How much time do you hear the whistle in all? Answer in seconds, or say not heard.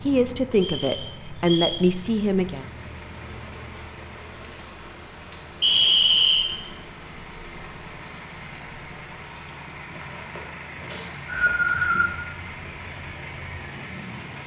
3 s.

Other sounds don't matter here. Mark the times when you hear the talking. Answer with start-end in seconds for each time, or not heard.
0.0-2.6.